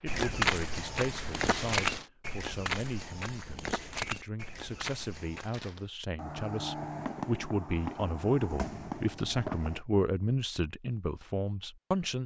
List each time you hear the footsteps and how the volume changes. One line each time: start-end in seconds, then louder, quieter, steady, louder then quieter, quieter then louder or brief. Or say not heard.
0.1-5.5 quieter.